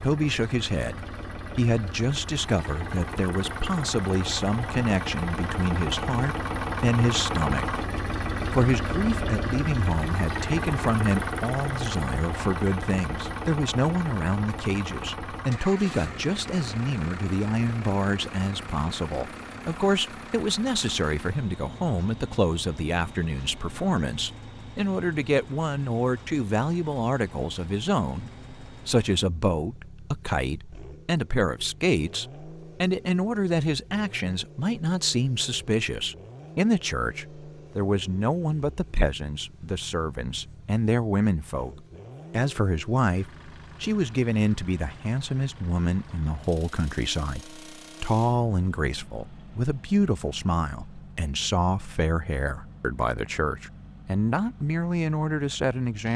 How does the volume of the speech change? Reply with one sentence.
The volume of the speech stays about the same.